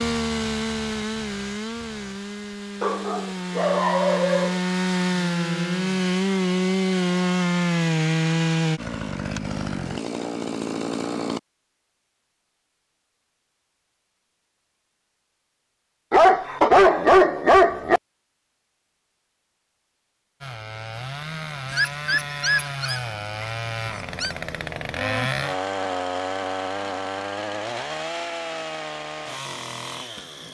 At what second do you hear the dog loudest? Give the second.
17 s.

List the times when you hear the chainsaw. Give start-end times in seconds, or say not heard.
0.0-11.4, 20.4-30.4.